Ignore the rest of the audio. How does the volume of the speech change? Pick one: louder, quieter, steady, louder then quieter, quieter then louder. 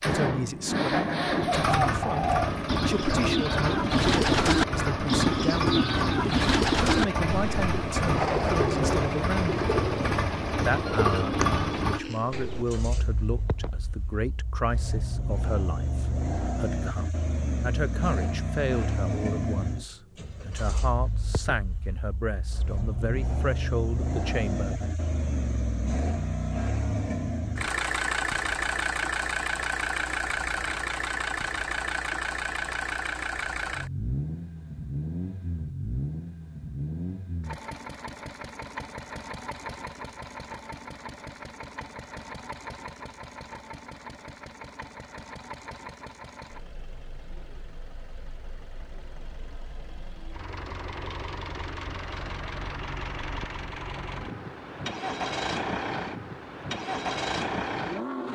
steady.